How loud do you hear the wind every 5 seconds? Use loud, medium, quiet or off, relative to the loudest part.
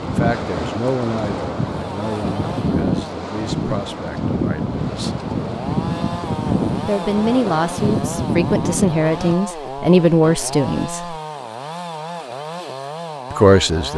loud, loud, off.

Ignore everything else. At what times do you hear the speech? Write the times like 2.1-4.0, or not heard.
0.0-5.2, 6.8-11.2, 13.3-13.9.